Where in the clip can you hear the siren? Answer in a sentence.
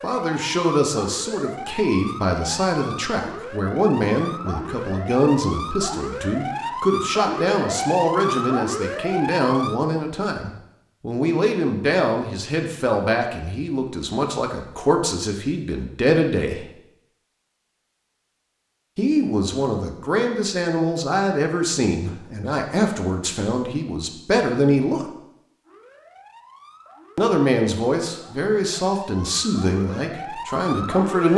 The siren can be heard from 0.0 to 9.8 s and from 25.6 to 31.3 s.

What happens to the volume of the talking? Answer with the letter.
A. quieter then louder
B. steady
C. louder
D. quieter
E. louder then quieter
B.